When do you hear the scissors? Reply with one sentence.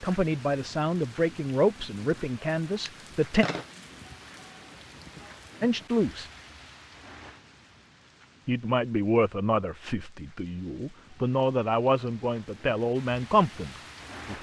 You can hear the scissors from 2.7 to 3.7 s.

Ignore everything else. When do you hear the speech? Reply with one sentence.
You can hear the speech from 0.0 to 3.5 s, from 5.6 to 6.3 s and from 8.4 to 14.3 s.